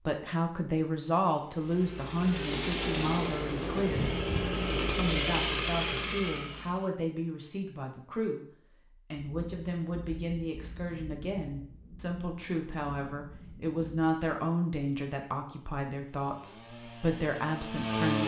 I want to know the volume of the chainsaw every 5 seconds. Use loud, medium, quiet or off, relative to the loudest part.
loud, loud, off, loud.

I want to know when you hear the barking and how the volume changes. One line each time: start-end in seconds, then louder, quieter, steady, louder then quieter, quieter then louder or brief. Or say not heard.
not heard.